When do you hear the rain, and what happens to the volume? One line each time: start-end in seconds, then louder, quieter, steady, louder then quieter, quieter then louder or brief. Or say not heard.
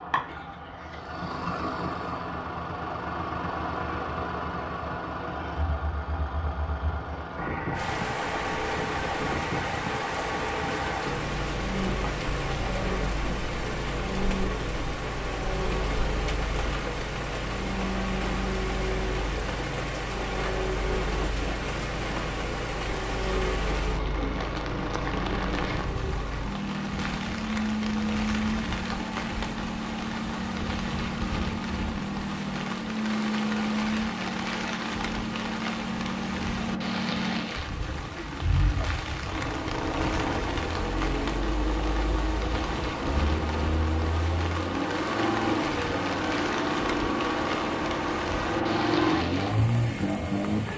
7.7-50.7 steady.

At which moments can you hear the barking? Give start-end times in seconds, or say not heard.
not heard.